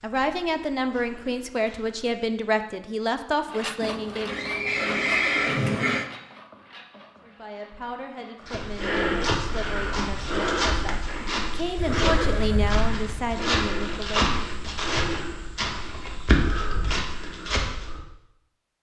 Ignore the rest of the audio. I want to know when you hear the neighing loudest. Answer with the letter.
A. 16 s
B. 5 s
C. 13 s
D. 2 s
B.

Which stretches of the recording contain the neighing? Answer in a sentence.
The neighing can be heard from 3.8 to 6.1 s and from 11.8 to 13.4 s.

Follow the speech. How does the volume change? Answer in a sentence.
The volume of the speech goes down, then up.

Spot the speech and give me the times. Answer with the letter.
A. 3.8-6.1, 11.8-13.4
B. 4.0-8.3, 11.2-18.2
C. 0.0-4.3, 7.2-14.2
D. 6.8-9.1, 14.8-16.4
C.